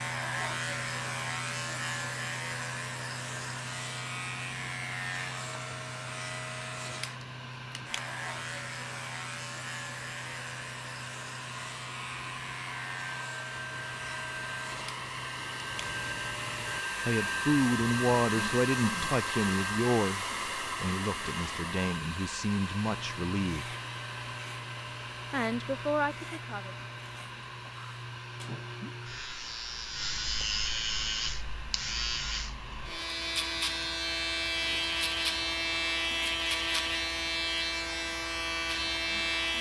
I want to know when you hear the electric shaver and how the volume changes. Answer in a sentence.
You can hear the electric shaver from 0.0 to 16.9 s, getting quieter; and from 22.9 to 39.5 s, getting louder.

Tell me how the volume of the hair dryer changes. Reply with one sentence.
The volume of the hair dryer goes up, then down.